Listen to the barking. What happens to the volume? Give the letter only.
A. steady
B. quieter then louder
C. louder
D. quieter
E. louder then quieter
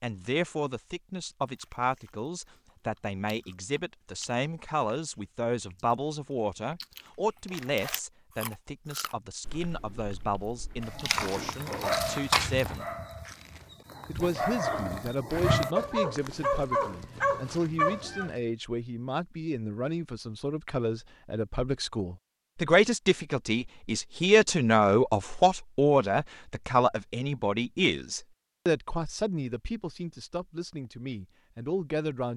B.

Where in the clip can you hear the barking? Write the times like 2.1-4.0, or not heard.
10.8-18.3.